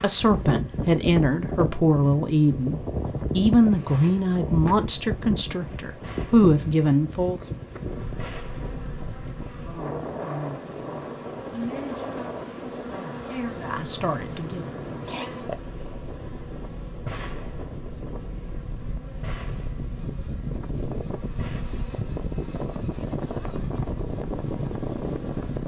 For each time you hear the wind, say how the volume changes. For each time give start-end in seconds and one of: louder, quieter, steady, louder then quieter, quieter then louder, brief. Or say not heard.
0.0-25.6 quieter then louder.